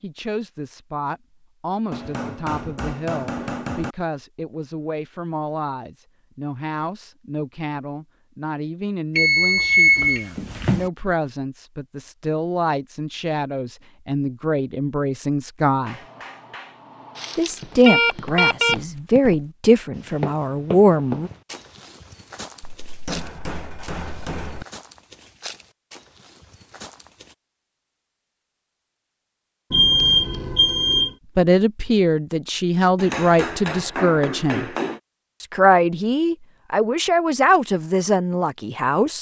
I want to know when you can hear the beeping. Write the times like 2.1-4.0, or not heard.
9.2-10.9, 17.1-18.8, 29.7-31.1.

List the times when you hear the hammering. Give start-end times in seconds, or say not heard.
1.9-4.0, 15.8-17.4, 22.6-24.6, 33.0-35.0.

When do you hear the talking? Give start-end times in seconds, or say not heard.
0.0-16.0, 17.4-21.3, 31.4-34.7, 35.4-39.1.